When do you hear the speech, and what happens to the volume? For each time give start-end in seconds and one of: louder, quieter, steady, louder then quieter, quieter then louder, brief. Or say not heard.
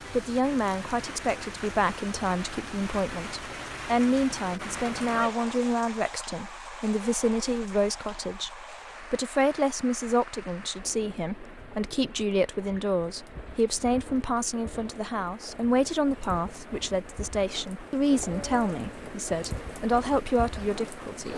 0.1-21.3 steady.